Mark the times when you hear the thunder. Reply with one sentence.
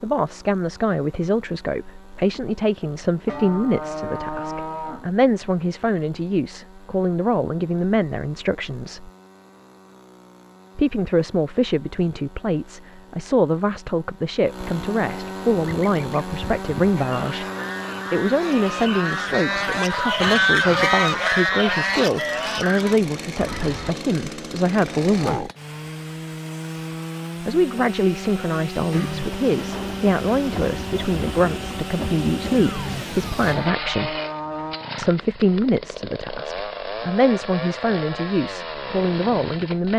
The thunder can be heard from 28.9 to 33.6 s.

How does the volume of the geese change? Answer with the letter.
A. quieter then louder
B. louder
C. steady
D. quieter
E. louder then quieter
E.